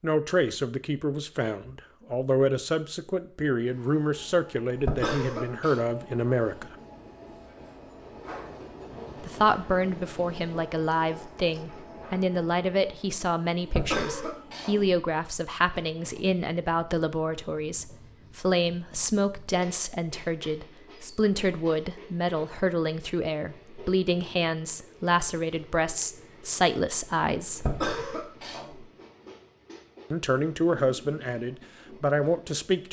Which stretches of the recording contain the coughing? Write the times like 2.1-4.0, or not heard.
4.8-5.8, 13.7-15.0, 27.6-28.9.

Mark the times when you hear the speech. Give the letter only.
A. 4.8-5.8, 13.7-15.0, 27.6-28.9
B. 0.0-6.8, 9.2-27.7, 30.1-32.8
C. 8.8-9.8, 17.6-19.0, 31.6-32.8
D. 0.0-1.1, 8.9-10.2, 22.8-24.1
B.